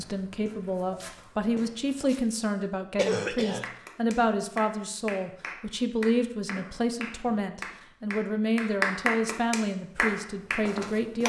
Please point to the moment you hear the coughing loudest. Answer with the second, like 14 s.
3 s.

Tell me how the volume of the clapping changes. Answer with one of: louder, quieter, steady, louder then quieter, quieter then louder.
louder.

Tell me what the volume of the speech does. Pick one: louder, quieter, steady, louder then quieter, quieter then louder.
steady.